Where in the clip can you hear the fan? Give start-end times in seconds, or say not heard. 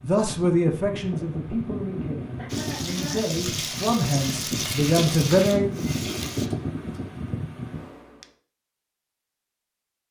0.0-8.2.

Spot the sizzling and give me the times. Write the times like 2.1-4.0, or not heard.
2.5-6.5.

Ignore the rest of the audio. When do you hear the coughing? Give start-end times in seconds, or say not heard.
2.4-3.2, 6.0-7.0.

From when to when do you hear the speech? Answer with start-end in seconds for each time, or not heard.
0.1-5.7.